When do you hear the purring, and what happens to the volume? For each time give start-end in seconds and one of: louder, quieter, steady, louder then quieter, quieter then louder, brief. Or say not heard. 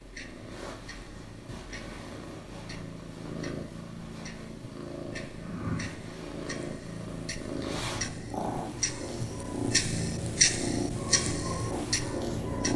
0.0-12.7 louder.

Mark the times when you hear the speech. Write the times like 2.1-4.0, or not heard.
not heard.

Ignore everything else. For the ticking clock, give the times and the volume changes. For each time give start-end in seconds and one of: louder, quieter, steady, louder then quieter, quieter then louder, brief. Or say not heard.
0.0-12.7 louder.